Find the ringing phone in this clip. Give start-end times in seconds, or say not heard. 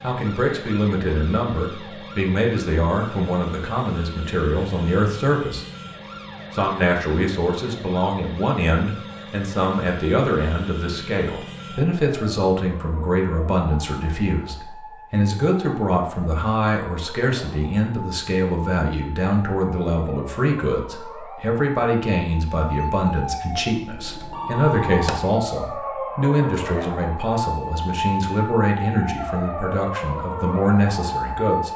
23.9-25.2.